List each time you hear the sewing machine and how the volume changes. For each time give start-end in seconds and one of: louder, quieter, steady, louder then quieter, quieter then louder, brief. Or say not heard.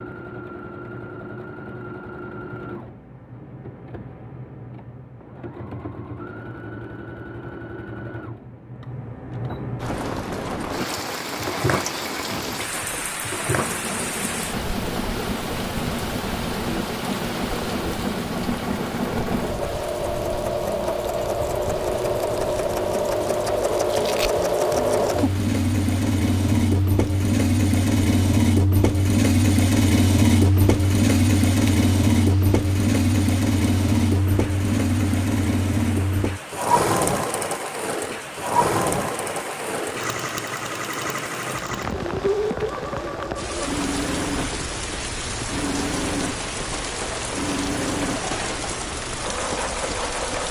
0.0-50.4 louder then quieter.